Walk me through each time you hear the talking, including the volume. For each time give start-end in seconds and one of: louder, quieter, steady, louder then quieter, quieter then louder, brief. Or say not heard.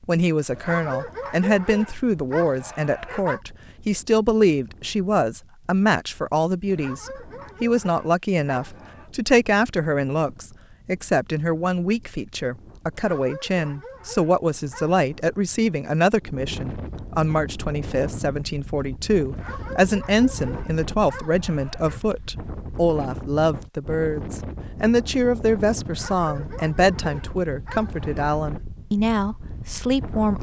0.1-30.3 steady.